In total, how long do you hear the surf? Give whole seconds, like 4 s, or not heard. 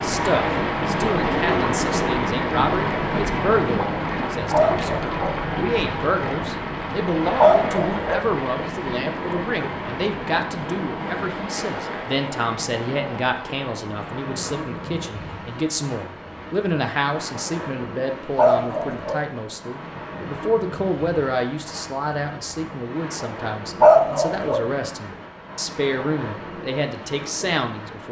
28 s.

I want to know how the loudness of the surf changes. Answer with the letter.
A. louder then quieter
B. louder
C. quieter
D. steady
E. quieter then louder
C.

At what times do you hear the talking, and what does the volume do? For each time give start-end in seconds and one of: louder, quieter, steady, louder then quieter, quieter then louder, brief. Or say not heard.
0.0-28.0 steady.